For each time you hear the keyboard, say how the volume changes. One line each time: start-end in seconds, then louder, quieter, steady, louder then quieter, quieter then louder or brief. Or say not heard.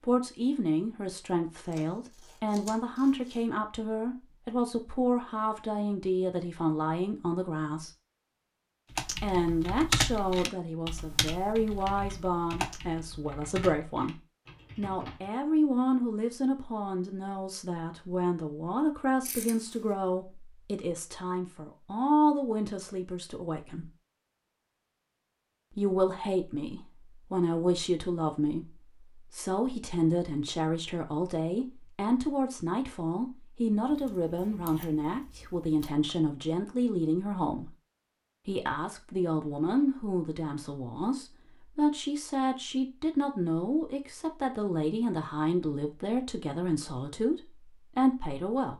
8.9-15.3 quieter.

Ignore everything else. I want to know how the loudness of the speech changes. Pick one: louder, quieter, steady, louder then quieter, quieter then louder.
steady.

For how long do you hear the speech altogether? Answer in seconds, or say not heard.
45 s.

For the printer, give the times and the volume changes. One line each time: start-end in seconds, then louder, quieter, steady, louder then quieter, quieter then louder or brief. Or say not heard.
not heard.